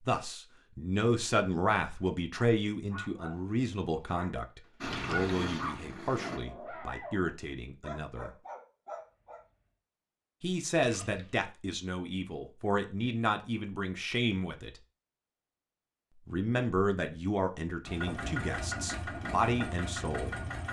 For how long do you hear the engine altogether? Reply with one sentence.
The engine can be heard for 4 seconds in total.